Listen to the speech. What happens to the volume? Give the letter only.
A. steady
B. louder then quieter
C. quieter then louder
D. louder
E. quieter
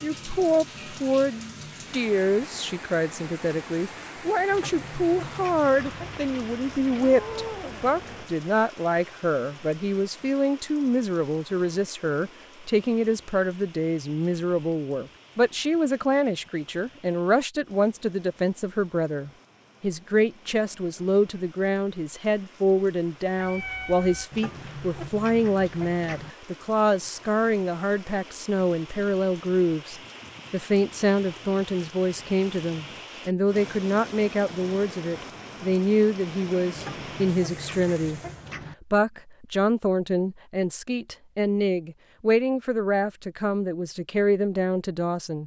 A.